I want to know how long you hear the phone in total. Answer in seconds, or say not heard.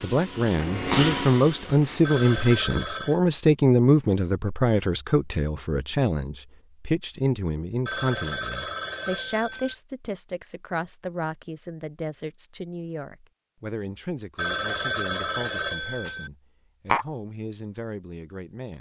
5 s.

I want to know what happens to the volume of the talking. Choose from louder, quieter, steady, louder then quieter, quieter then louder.
quieter.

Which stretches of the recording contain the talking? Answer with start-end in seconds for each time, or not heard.
0.0-18.7.